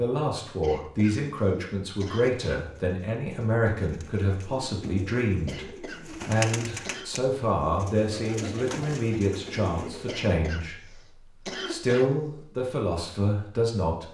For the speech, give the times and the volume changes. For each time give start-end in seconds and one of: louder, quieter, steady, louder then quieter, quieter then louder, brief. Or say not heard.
0.0-11.0 steady
11.7-14.0 brief.